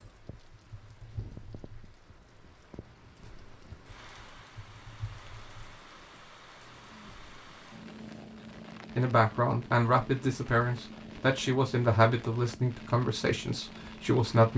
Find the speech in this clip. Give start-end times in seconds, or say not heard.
8.9-14.5.